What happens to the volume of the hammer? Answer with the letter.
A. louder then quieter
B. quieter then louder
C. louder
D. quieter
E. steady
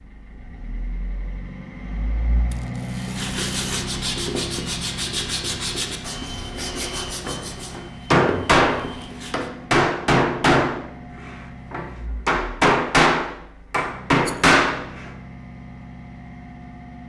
E.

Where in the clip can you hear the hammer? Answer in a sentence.
You can hear the hammer from 7.2 to 15.1 s.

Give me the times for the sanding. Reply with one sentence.
You can hear the sanding from 3.0 to 9.4 s.